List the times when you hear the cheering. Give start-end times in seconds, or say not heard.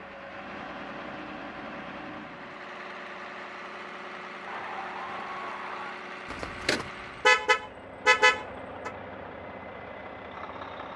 4.5-6.0.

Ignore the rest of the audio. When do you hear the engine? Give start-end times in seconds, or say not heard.
0.0-10.9.